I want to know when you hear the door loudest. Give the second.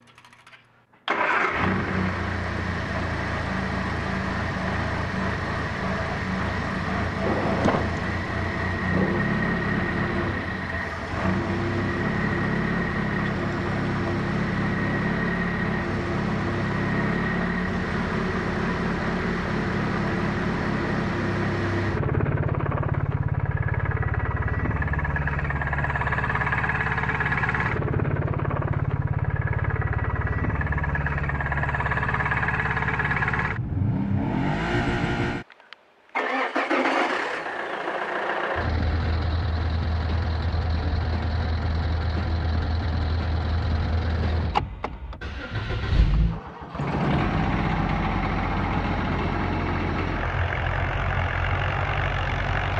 8 s.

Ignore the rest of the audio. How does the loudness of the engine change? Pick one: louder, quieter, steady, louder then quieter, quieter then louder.
steady.